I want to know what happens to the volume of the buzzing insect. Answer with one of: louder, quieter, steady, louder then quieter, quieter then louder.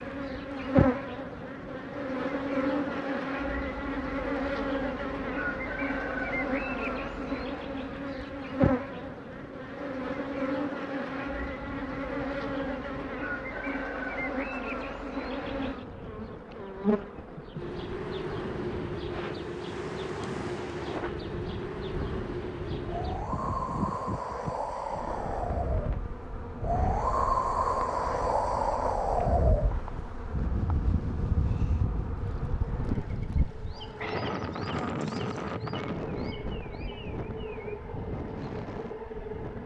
quieter.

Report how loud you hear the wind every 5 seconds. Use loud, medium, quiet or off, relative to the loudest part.
quiet, quiet, quiet, quiet, medium, loud, medium, medium.